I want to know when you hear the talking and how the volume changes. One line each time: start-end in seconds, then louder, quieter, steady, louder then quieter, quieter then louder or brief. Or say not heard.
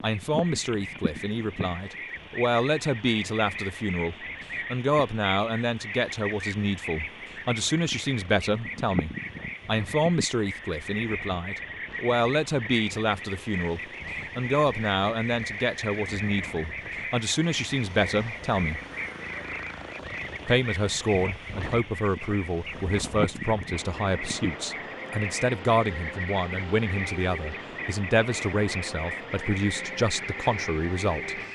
0.0-18.8 steady
20.4-31.5 steady.